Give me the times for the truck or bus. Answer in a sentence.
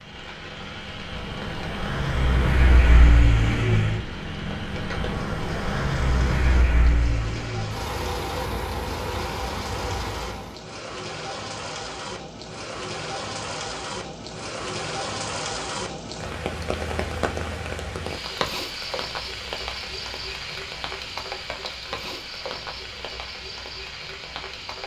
You can hear the truck or bus from 0.0 to 10.6 s.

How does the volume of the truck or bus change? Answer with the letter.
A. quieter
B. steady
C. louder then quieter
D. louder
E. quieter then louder
C.